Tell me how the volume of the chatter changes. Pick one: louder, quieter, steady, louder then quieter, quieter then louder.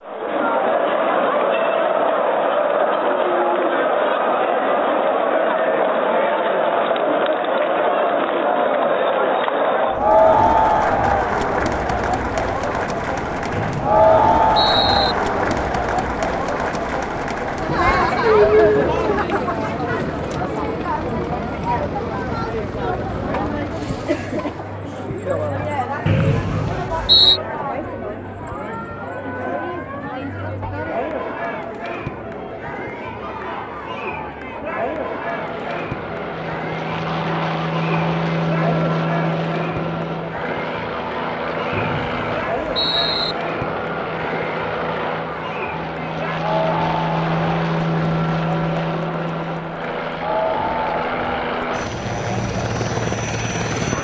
quieter.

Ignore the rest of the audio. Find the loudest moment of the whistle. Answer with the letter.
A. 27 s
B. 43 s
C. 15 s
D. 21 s
A.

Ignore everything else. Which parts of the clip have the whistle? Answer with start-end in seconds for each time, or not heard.
13.5-15.2, 26.1-27.4, 41.7-43.4.